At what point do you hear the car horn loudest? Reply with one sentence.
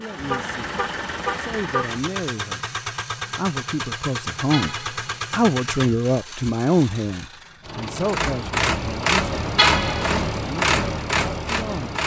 The loudest moment of the car horn is at 10 seconds.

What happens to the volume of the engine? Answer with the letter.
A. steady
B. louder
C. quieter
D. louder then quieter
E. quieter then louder
B.